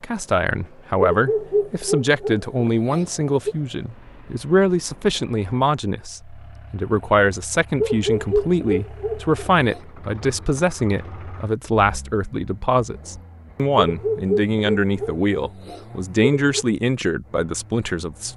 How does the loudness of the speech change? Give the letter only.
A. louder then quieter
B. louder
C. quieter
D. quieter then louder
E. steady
E.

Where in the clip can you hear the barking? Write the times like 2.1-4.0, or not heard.
1.1-3.5, 7.8-9.8, 13.8-16.6.